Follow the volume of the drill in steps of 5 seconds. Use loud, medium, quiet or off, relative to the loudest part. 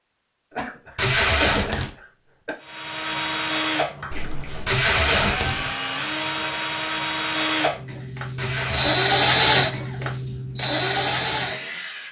medium, loud, loud.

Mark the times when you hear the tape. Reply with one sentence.
The tape can be heard from 0.9 to 1.9 s, from 4.7 to 5.8 s and from 8.3 to 9.0 s.